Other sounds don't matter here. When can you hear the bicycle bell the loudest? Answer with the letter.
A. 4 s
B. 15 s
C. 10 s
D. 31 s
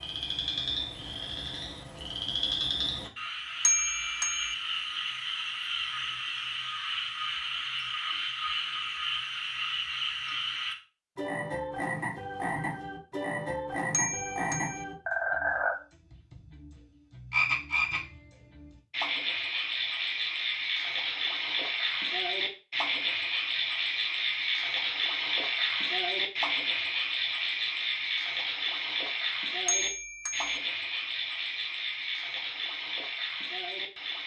A.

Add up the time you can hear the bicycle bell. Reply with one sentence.
You can hear the bicycle bell for 3 seconds altogether.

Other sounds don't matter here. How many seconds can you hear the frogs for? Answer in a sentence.
You can hear the frogs for 34 seconds altogether.